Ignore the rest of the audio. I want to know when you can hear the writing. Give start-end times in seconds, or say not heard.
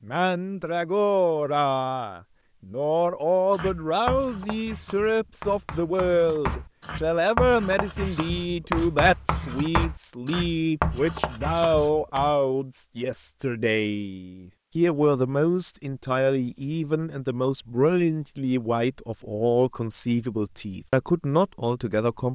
3.5-12.3.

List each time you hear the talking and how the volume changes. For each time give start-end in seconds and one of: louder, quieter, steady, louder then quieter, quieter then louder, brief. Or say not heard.
0.1-22.2 steady.